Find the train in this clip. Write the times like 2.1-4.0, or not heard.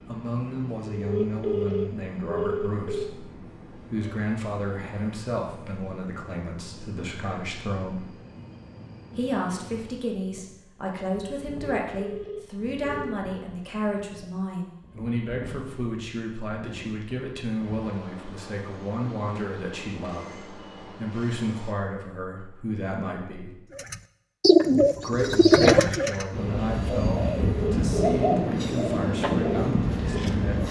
0.0-21.8, 26.3-30.6.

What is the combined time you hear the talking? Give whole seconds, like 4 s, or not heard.
28 s.